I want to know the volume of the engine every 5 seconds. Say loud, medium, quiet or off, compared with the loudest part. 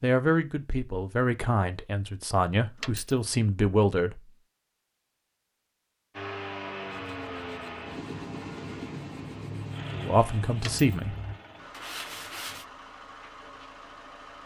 off, loud, medium.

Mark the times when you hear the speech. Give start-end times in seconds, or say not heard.
0.0-4.2, 9.9-11.2.